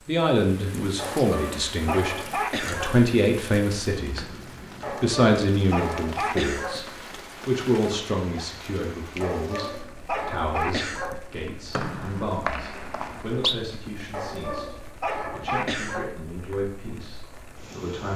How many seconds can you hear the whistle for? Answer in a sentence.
The whistle can be heard for 2 seconds in total.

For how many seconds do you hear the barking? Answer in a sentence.
The barking can be heard for 8 seconds in total.